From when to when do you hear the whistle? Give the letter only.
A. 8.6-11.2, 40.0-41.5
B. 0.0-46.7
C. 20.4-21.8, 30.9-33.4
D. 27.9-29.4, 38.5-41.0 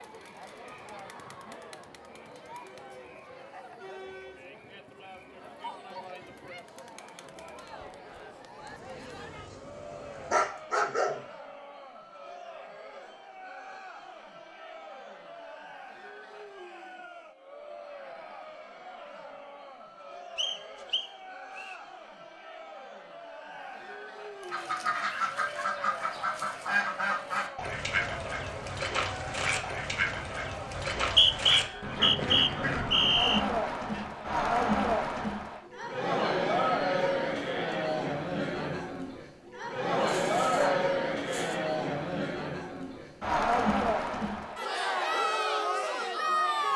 C.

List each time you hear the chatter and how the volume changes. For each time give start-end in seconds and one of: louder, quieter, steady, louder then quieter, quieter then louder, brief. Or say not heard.
0.0-46.7 louder.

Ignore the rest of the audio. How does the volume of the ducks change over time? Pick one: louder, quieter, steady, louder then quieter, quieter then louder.
steady.